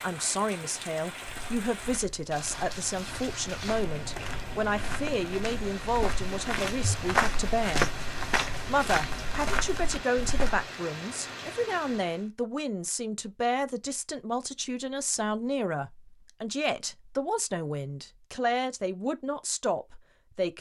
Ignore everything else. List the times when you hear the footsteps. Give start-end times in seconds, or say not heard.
1.2-10.7.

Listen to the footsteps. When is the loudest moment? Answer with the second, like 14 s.
7 s.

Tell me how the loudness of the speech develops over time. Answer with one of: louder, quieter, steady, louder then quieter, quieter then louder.
steady.